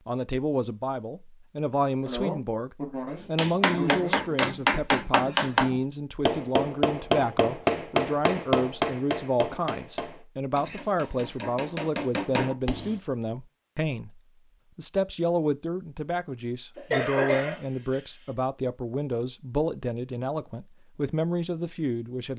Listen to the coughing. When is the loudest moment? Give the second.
17 s.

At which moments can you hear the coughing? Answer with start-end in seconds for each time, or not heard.
2.0-4.3, 10.6-11.4, 16.8-18.0.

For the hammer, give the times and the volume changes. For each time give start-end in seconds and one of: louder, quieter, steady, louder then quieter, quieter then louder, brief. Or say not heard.
3.2-12.9 quieter.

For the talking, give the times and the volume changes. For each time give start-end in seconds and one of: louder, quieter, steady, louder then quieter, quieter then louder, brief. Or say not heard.
0.1-22.3 steady.